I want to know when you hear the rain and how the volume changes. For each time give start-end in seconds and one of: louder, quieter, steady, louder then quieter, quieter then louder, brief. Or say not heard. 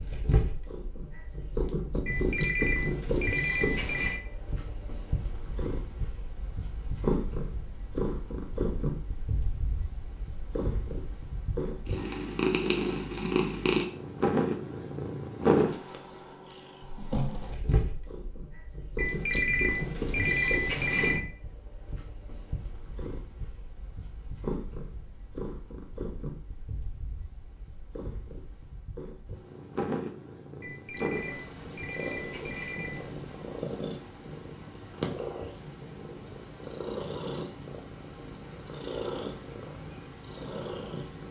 not heard.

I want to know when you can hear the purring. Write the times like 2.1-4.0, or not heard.
0.0-41.2.